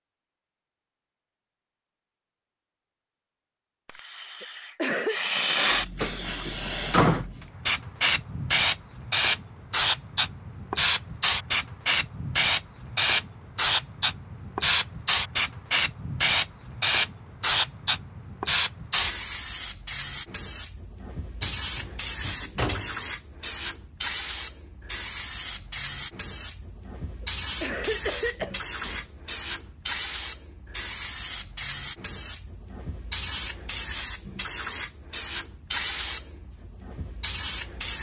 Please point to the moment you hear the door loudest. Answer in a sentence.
The loudest moment of the door is at 7 seconds.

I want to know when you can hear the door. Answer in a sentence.
The door can be heard from 6.0 to 7.2 s, from 21.4 to 23.1 s and from 28.8 to 29.3 s.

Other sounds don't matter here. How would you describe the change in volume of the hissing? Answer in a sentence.
The volume of the hissing goes down.